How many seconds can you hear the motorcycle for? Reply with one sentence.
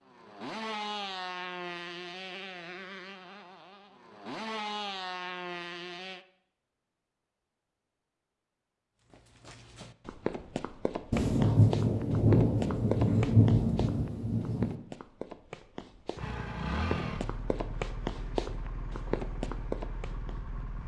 The motorcycle can be heard for 11 seconds in total.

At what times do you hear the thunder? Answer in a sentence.
You can hear the thunder from 11.1 to 14.8 s.